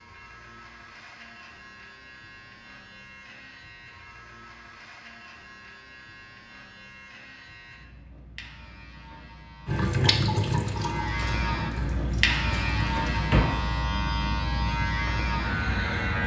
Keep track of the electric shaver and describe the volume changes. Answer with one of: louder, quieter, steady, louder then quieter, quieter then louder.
louder.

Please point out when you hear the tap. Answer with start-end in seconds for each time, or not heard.
9.7-13.4.